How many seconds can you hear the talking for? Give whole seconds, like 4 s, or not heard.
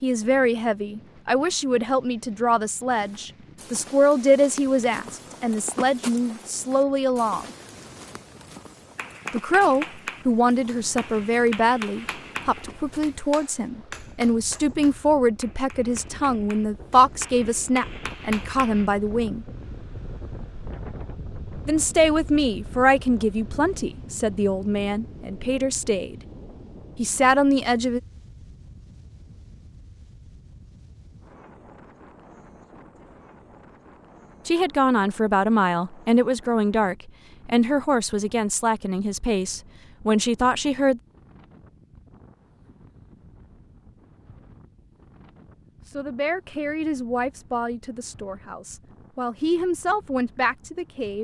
35 s.